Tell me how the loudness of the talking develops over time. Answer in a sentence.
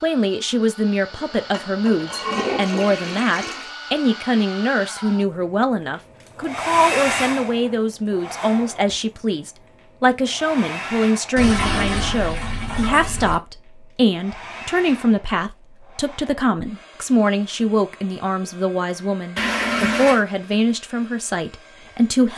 The volume of the talking stays about the same.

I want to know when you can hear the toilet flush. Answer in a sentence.
The toilet flush can be heard from 1.1 to 3.7 s, from 11.3 to 13.4 s and from 19.4 to 20.2 s.